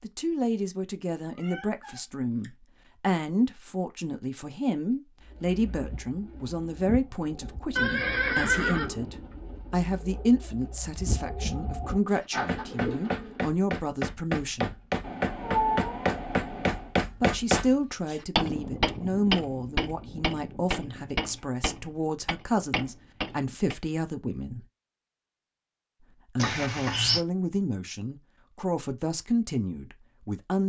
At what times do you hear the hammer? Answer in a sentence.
The hammer can be heard from 12.1 to 23.8 s.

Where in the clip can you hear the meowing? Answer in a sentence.
You can hear the meowing from 1.4 to 2.5 s, from 15.0 to 16.9 s and from 26.4 to 27.2 s.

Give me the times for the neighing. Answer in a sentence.
You can hear the neighing from 7.8 to 8.9 s.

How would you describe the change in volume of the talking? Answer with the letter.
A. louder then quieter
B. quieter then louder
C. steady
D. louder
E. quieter
C.